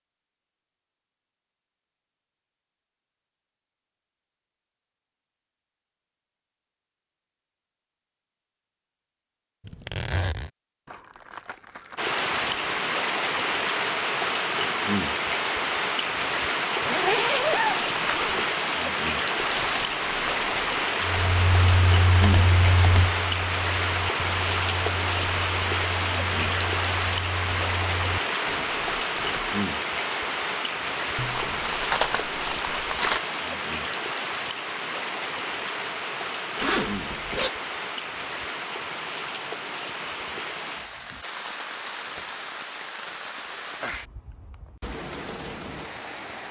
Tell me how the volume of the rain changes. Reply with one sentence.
The volume of the rain goes down.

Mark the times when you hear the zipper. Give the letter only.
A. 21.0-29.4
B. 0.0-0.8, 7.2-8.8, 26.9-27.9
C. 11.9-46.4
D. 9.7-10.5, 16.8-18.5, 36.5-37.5
D.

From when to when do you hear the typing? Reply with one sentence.
You can hear the typing from 21.0 to 29.4 s.